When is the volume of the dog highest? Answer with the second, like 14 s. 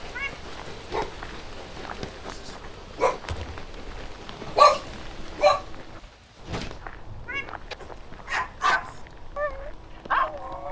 5 s.